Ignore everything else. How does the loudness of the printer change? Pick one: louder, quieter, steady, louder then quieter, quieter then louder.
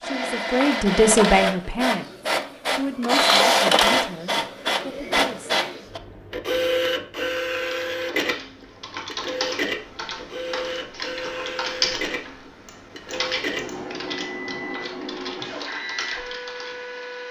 quieter.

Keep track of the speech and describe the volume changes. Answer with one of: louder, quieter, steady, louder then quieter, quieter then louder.
quieter.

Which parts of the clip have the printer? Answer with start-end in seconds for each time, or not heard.
0.0-17.2.